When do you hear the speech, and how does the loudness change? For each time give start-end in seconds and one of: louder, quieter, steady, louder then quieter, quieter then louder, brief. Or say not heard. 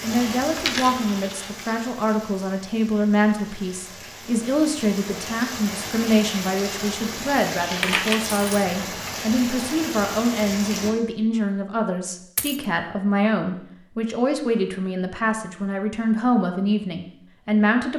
0.0-17.9 steady.